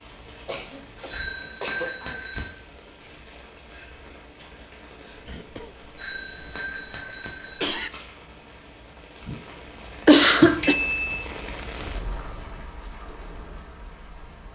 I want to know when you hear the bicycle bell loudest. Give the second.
11 s.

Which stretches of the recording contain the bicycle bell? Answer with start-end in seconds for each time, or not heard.
1.1-2.5, 6.0-7.6, 10.6-11.2.